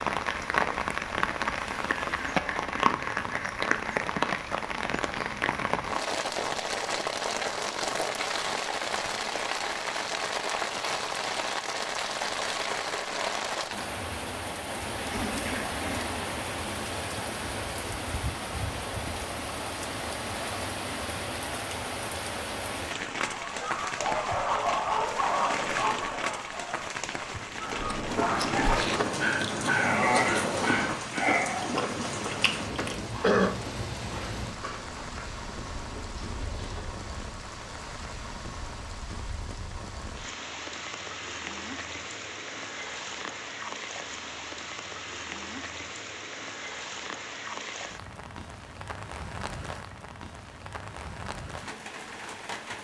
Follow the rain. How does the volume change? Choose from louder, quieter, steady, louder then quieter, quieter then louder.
quieter.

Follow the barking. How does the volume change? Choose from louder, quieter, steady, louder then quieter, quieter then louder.
quieter then louder.